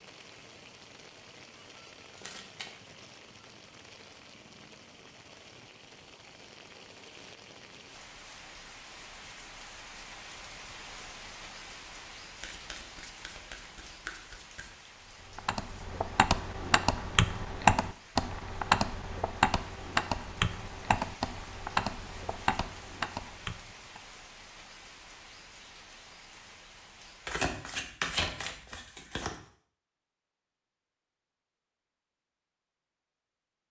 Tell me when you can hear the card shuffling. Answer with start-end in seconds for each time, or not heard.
2.1-2.7, 12.4-14.7, 27.2-29.4.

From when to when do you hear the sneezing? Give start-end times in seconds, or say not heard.
not heard.